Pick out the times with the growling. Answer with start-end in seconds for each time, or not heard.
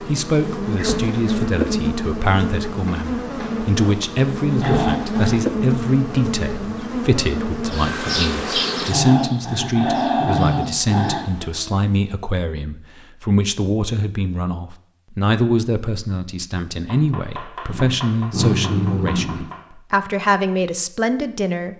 4.6-5.4, 8.9-11.3, 17.6-19.4.